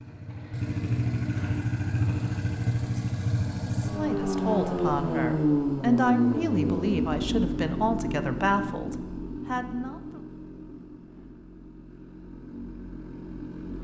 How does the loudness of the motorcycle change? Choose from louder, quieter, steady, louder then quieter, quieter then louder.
quieter.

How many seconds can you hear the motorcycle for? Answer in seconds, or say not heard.
14 s.